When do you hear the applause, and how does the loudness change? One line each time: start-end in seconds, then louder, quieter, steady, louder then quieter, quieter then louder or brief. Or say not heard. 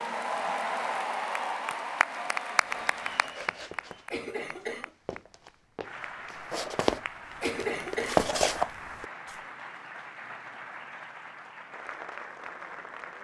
0.0-13.1 quieter.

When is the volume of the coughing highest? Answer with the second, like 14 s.
8 s.